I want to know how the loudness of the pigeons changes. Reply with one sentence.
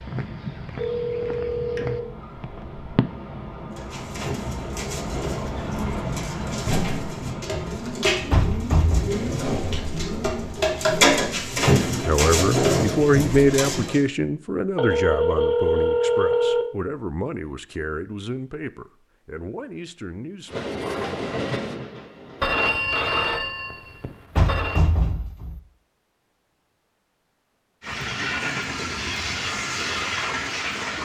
The volume of the pigeons goes up.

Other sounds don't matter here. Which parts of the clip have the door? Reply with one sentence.
The door can be heard from 8.3 to 9.2 s and from 24.4 to 25.6 s.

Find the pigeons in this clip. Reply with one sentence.
The pigeons can be heard from 3.7 to 14.0 s.